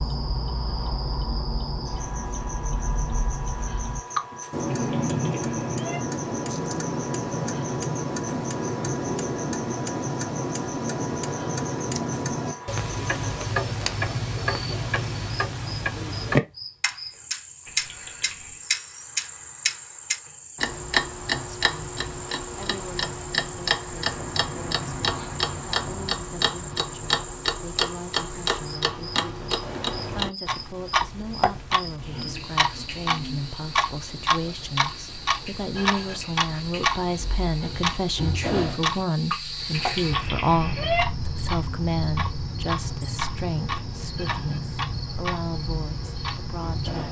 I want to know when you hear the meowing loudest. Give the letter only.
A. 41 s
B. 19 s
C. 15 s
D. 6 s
A.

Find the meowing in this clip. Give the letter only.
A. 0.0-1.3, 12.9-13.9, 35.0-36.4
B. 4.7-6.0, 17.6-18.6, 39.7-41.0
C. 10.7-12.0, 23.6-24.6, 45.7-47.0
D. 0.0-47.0
B.